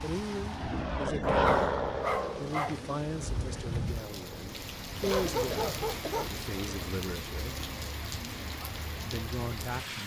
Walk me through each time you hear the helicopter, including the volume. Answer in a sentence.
You can hear the helicopter from 0.0 to 5.9 s, getting quieter.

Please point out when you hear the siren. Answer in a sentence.
You can't hear the siren here.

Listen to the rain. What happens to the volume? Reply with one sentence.
The volume of the rain goes up.